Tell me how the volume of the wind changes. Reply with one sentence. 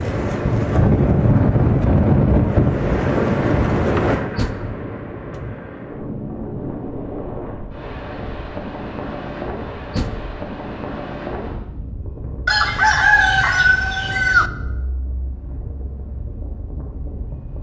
The loudness of the wind goes down.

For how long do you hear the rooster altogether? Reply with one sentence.
The rooster can be heard for 2 seconds in total.